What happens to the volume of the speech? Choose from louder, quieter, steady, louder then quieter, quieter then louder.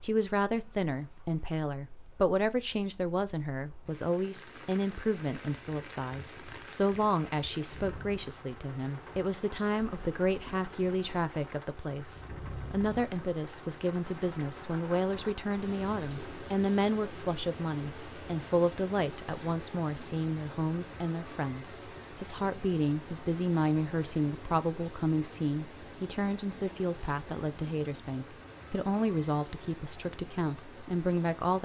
steady.